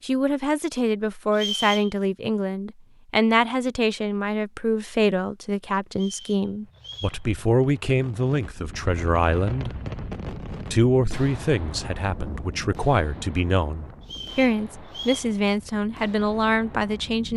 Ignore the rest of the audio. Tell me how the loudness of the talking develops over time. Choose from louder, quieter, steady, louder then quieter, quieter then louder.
steady.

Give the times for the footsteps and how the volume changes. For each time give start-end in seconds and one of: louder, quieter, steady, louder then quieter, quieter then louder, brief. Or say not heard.
not heard.